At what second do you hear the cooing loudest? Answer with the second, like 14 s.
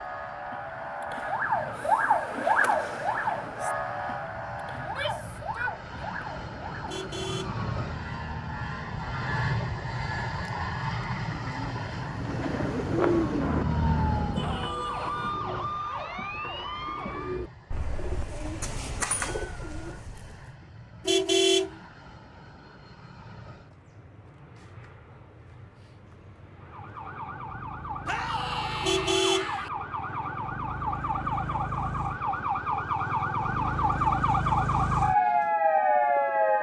13 s.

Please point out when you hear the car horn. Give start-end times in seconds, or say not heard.
6.8-7.6, 21.1-21.8, 28.8-29.5.